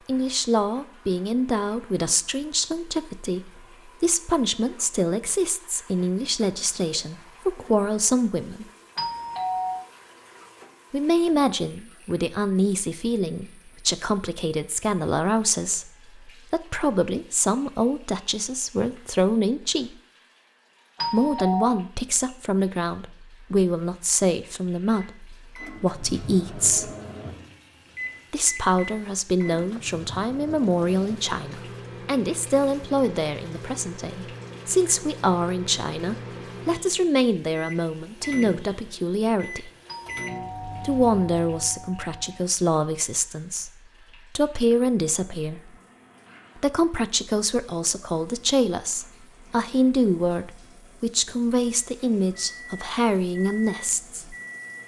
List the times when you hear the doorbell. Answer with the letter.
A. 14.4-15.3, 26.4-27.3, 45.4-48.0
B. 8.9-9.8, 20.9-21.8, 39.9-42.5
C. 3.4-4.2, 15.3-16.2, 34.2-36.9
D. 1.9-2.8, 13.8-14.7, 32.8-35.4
B.